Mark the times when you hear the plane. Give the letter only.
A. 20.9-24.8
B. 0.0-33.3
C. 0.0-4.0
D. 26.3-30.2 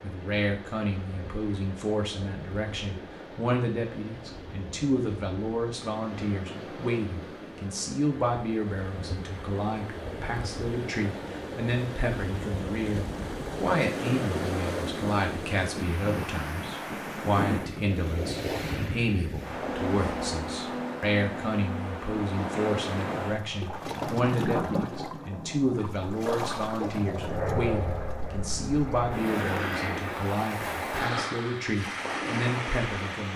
D.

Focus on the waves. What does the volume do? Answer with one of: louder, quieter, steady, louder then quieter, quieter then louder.
louder.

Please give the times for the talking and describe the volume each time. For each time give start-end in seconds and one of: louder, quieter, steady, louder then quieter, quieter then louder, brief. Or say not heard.
0.0-33.3 steady.